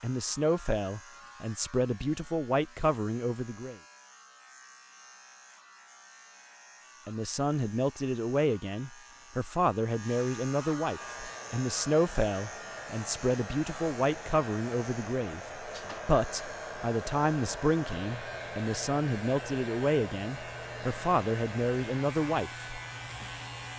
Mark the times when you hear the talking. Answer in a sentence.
You can hear the talking from 0.0 to 3.8 s and from 7.0 to 22.7 s.